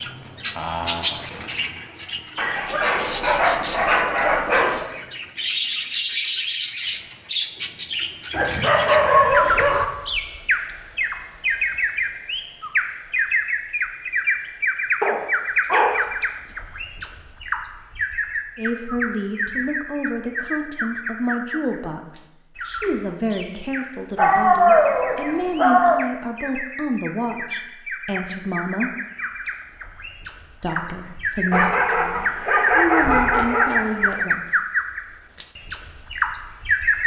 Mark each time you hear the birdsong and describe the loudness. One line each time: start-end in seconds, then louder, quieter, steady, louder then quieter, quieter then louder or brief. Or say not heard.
0.0-37.0 quieter then louder.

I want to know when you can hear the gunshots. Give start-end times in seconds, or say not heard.
not heard.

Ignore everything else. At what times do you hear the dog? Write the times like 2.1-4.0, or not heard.
2.4-4.8, 8.3-9.8, 15.0-16.1, 24.1-26.1, 31.5-34.2.